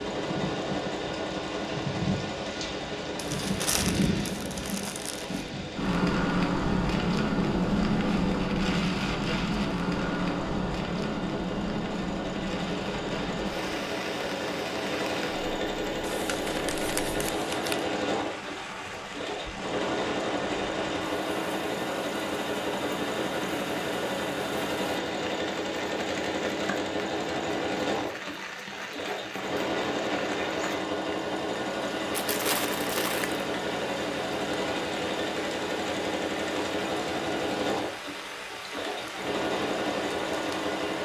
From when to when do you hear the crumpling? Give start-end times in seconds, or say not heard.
3.1-5.5, 16.0-17.9, 32.1-33.4.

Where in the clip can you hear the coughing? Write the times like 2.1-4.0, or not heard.
not heard.